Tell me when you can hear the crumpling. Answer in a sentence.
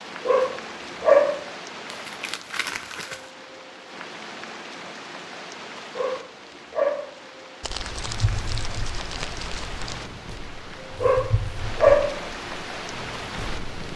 The crumpling can be heard from 1.9 to 3.3 s and from 7.6 to 10.1 s.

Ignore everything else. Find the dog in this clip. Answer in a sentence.
The dog can be heard from 0.2 to 1.4 s, from 6.0 to 7.2 s and from 11.0 to 12.2 s.